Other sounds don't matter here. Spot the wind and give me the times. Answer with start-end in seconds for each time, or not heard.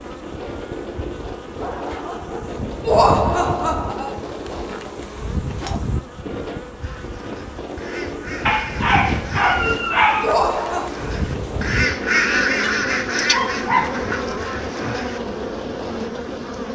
0.0-16.4.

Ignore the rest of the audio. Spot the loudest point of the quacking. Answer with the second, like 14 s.
12 s.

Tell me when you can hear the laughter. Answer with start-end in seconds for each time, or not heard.
2.9-4.2, 10.2-10.9.